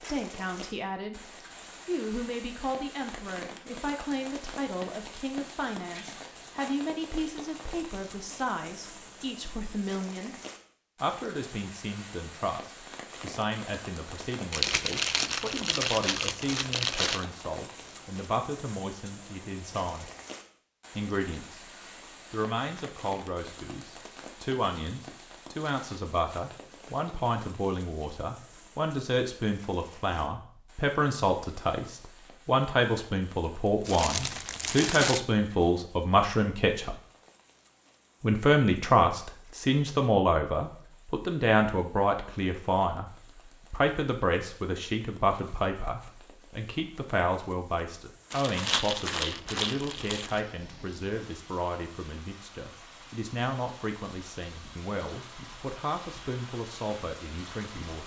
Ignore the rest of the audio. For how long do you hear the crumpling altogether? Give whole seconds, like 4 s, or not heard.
6 s.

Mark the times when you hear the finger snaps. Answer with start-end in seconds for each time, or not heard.
not heard.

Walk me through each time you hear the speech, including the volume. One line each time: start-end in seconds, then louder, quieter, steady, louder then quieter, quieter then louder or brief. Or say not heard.
0.0-10.3 steady
11.0-20.1 steady
20.9-21.6 brief
22.3-37.0 louder
38.2-58.0 quieter.